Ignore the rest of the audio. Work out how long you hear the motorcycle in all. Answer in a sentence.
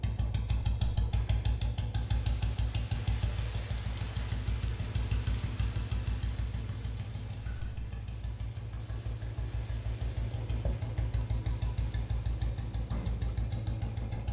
The motorcycle can be heard for 14 seconds in total.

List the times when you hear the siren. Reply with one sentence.
The siren can't be heard in this clip.